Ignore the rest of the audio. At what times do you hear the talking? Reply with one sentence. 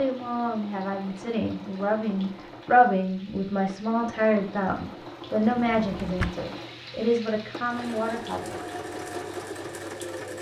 You can hear the talking from 0.0 to 8.6 s.